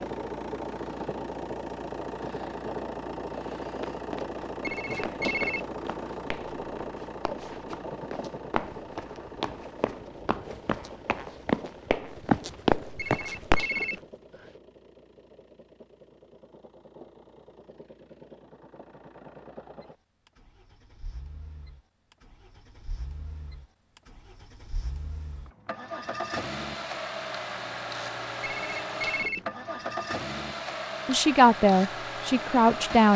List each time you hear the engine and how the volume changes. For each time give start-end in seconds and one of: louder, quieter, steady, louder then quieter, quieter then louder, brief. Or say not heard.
0.0-33.1 quieter then louder.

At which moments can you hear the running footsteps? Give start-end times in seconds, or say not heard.
3.8-13.7.